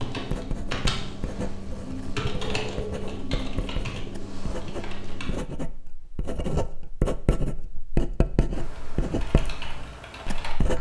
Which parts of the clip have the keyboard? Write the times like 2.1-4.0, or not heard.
0.0-5.3, 8.5-10.7.